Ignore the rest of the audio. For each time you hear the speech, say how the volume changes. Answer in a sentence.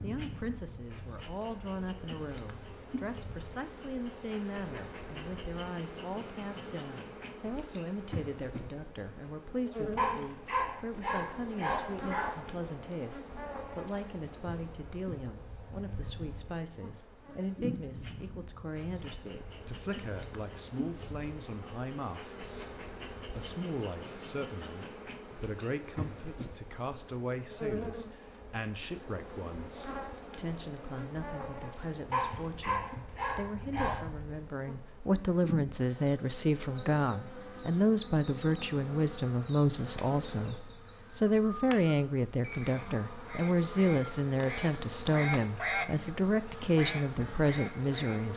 You can hear the speech from 0.0 to 48.3 s, getting louder.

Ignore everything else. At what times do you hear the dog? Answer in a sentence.
You can hear the dog from 9.9 to 12.5 s and from 32.1 to 34.0 s.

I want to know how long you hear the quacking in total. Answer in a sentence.
You can hear the quacking for 5 seconds altogether.